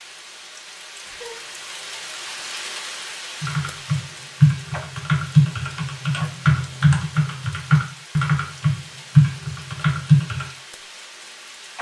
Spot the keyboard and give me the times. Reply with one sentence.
You can hear the keyboard from 3.4 to 10.4 s.